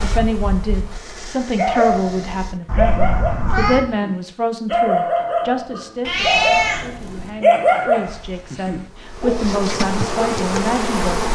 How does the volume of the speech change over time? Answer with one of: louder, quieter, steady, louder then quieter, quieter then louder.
quieter then louder.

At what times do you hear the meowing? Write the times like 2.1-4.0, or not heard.
2.6-3.8, 6.0-7.3.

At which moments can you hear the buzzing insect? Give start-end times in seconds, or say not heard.
0.0-2.6, 8.1-11.2.